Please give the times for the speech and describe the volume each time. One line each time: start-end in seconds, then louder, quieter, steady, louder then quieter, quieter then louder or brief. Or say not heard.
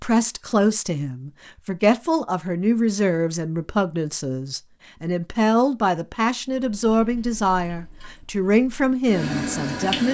0.0-10.0 steady.